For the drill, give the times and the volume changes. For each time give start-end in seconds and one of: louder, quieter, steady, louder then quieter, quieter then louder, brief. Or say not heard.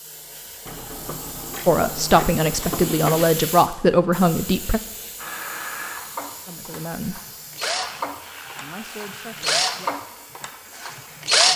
5.2-11.5 louder then quieter.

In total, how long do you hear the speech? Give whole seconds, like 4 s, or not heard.
5 s.